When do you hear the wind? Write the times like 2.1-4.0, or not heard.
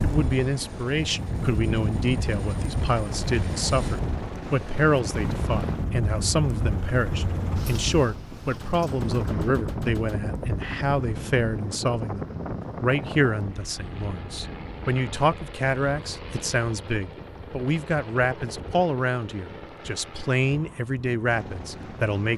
0.0-22.1.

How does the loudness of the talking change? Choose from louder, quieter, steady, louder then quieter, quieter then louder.
steady.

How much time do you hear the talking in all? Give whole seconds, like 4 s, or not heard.
22 s.